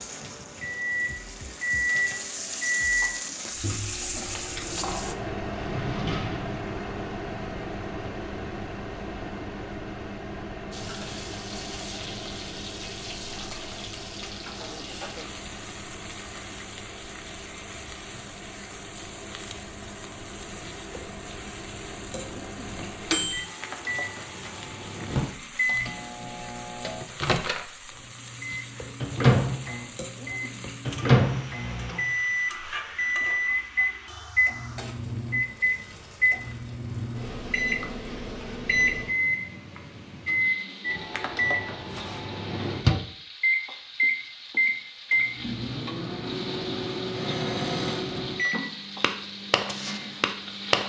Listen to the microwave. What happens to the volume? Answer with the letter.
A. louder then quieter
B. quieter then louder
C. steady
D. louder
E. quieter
B.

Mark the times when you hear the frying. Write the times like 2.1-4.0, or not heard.
0.0-5.2, 10.7-50.8.